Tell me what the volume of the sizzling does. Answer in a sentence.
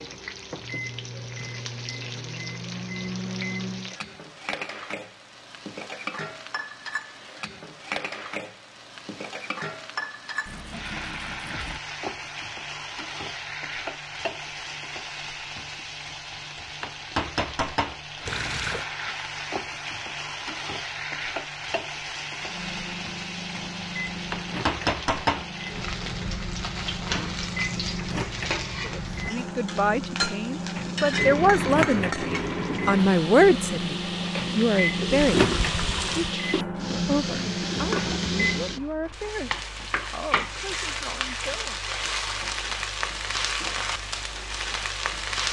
The loudness of the sizzling goes up.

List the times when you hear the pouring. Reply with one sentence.
The pouring can be heard from 10.4 to 11.8 s, from 18.2 to 18.9 s and from 35.1 to 36.4 s.